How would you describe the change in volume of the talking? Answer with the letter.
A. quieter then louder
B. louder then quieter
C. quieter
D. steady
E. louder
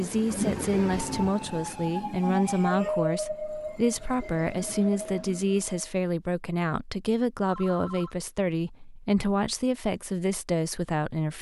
D.